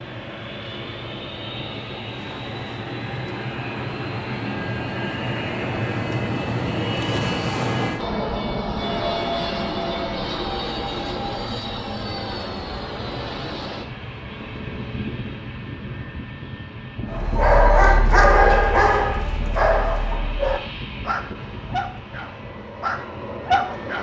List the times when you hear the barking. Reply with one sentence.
The barking can be heard from 17.1 to 23.9 s.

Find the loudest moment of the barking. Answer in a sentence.
The volume of the barking peaks at 18 seconds.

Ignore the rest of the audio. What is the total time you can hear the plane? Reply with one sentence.
The plane can be heard for 24 seconds in total.